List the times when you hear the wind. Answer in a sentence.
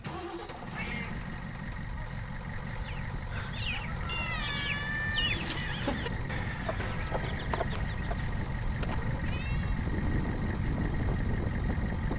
You can hear the wind from 5.1 to 12.1 s.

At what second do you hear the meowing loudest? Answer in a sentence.
The loudest moment of the meowing is at 5 seconds.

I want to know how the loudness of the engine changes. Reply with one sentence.
The loudness of the engine stays about the same.